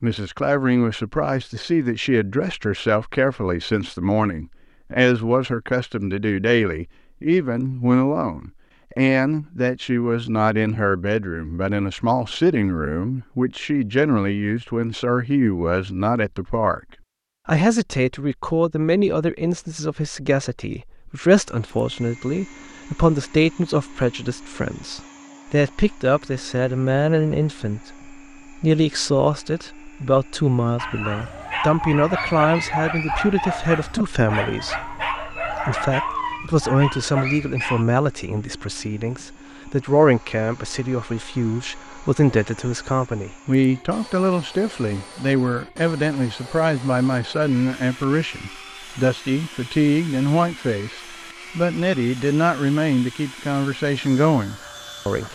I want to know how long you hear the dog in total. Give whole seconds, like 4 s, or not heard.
7 s.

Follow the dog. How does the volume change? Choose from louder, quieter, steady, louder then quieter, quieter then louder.
steady.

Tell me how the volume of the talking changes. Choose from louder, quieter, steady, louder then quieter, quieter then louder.
steady.